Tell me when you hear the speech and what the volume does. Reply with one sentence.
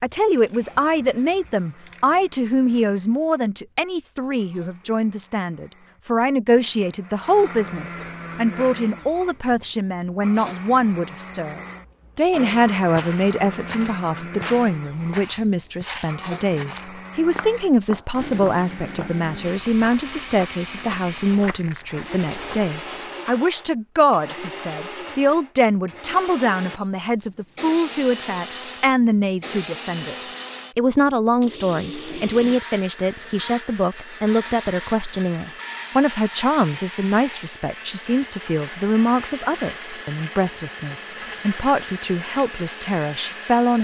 You can hear the speech from 0.0 to 43.7 s, at a steady volume.